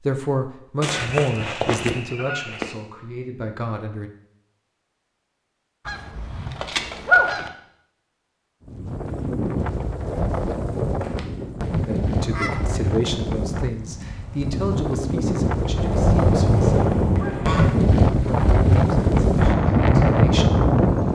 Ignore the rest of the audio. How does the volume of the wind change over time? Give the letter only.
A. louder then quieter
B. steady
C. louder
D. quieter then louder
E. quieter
C.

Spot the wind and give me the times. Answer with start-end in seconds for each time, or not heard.
8.7-21.0.